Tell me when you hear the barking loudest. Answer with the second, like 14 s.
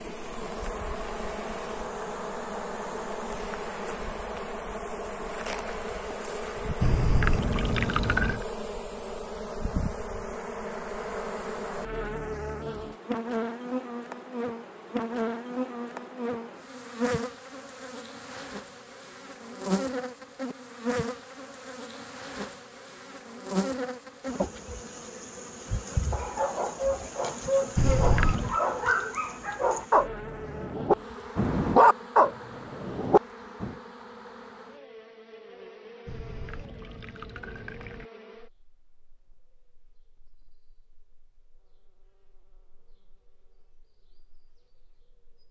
32 s.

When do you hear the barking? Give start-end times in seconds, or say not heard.
26.1-33.7.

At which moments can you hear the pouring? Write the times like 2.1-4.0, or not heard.
6.8-8.4, 27.8-28.6, 36.0-38.1.